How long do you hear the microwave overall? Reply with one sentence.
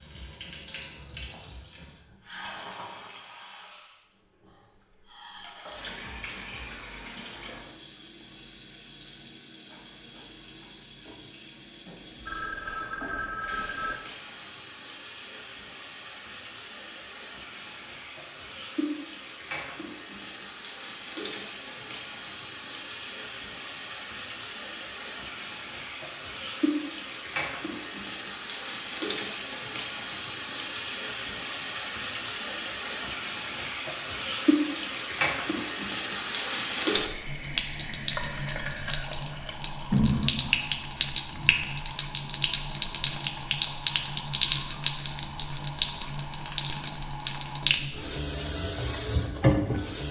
You can't hear the microwave here.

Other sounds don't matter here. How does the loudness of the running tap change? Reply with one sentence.
The volume of the running tap goes up.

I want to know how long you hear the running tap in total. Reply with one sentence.
You can hear the running tap for 50 seconds altogether.